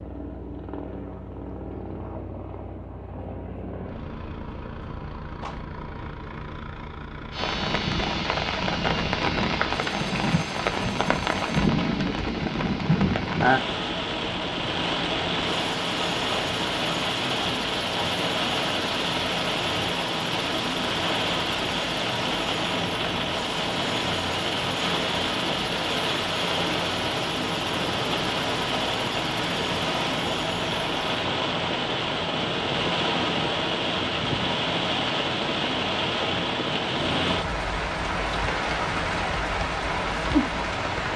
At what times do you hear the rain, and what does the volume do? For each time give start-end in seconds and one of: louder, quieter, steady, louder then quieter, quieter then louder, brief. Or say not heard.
7.3-41.1 steady.